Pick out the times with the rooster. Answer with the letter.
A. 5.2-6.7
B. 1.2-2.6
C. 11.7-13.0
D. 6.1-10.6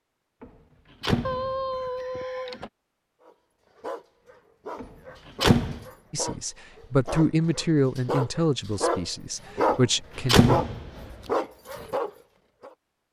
B.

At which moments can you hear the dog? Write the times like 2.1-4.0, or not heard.
3.2-12.8.